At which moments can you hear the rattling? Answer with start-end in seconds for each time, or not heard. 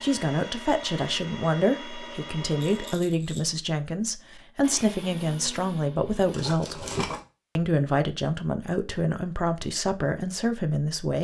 2.5-3.6, 6.3-7.2.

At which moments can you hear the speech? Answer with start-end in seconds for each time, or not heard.
0.0-6.8, 7.5-11.1.